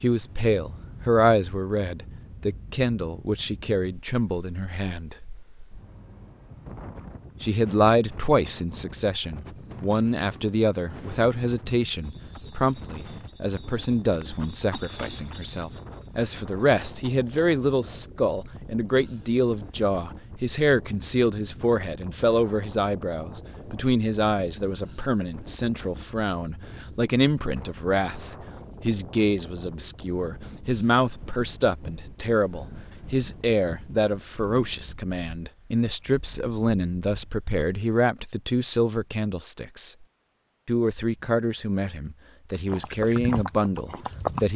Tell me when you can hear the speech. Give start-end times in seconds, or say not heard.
0.0-5.2, 7.4-40.0, 40.6-44.5.